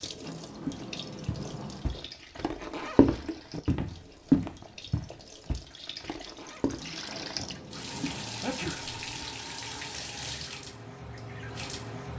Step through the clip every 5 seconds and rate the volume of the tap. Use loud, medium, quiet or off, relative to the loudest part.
medium, loud, loud.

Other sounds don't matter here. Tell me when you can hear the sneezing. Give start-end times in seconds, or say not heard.
8.4-9.2.